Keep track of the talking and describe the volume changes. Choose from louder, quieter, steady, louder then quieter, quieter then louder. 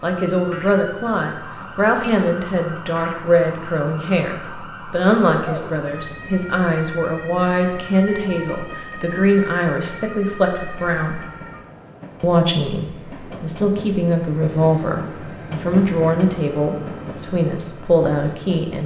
steady.